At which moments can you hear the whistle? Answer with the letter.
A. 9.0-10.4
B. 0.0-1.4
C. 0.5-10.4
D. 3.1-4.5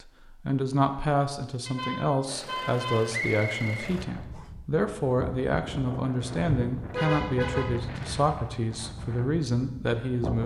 D.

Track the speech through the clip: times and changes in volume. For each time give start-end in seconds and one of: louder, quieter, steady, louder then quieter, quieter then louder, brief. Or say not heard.
0.5-10.4 steady.